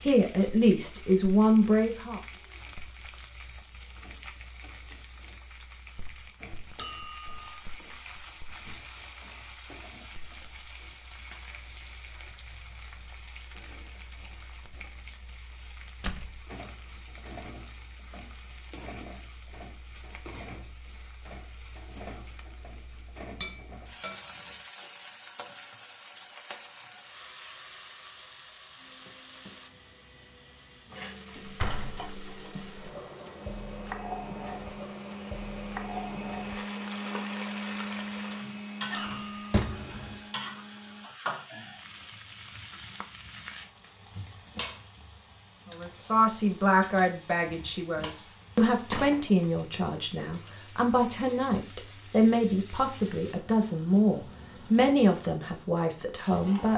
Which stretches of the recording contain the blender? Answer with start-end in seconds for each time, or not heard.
28.8-41.1.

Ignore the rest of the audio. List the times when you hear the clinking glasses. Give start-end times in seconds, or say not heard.
6.8-7.5, 23.4-24.6, 38.9-39.5.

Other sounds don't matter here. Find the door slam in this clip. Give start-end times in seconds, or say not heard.
16.0-16.4, 31.4-32.9, 39.0-40.2.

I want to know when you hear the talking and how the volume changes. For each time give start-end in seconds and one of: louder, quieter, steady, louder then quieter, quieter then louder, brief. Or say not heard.
0.0-2.2 brief
45.7-56.7 steady.